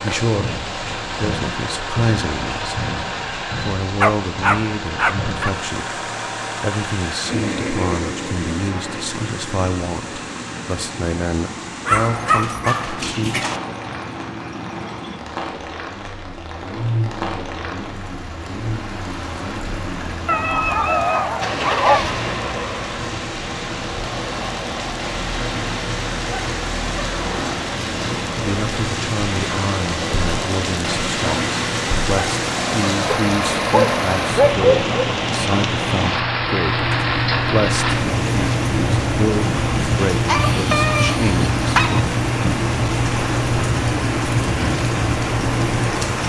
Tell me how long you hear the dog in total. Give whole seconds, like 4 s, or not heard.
9 s.